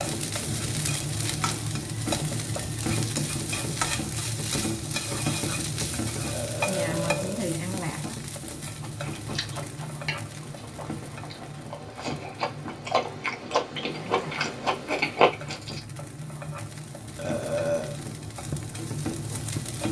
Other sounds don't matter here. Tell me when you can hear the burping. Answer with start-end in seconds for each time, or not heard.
6.2-7.5, 17.1-17.9.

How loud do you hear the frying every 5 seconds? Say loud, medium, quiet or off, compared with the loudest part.
loud, loud, medium, medium.